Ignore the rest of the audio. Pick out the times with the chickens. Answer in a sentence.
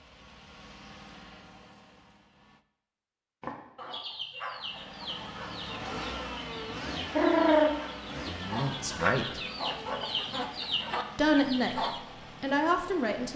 The chickens can be heard from 3.4 to 12.0 s.